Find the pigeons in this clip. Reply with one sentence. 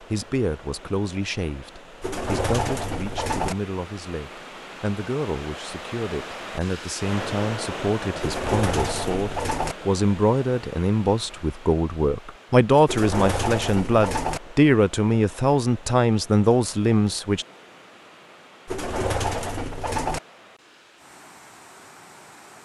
The pigeons can be heard from 2.0 to 3.5 s, from 8.2 to 9.8 s, from 12.8 to 14.4 s and from 18.6 to 20.2 s.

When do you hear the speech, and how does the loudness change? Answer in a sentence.
The speech can be heard from 0.1 to 17.4 s, getting louder.